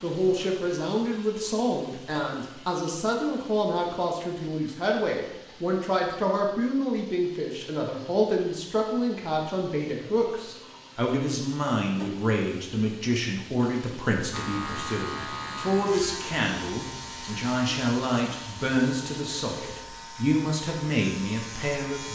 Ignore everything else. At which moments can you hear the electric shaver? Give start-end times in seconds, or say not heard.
14.3-22.1.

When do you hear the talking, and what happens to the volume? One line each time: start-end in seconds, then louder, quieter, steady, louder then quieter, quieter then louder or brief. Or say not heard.
0.0-22.1 steady.